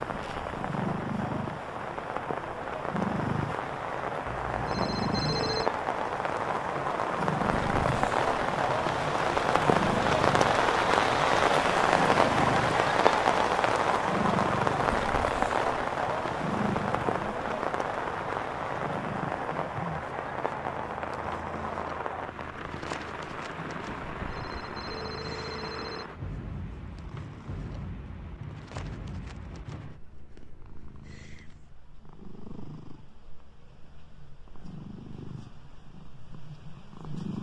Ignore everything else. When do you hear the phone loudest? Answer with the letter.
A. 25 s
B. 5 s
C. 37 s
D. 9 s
B.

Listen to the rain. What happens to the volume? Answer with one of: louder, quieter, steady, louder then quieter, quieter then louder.
louder then quieter.